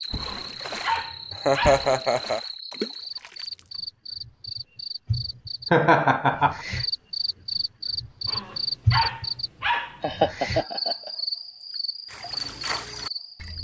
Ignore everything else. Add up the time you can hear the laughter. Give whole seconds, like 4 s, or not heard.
3 s.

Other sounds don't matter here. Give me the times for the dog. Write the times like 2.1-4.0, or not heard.
0.2-1.9, 8.2-10.1.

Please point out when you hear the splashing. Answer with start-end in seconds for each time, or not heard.
0.0-3.7, 12.1-13.6.